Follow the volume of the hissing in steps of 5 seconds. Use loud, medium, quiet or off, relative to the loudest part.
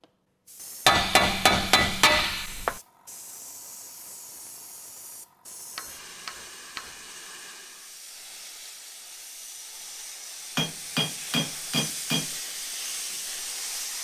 medium, medium, loud.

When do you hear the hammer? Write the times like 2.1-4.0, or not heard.
0.8-2.8, 5.8-7.0, 10.6-12.3.